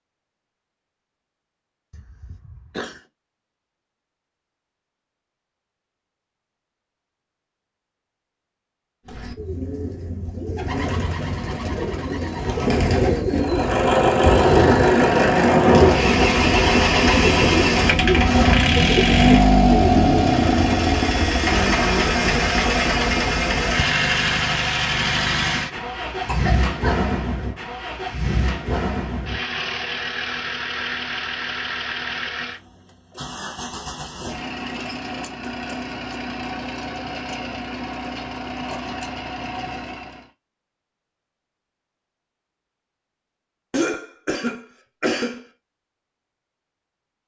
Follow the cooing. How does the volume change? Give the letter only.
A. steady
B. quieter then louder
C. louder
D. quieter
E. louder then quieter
C.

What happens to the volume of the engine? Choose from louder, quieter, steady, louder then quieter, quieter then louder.
quieter.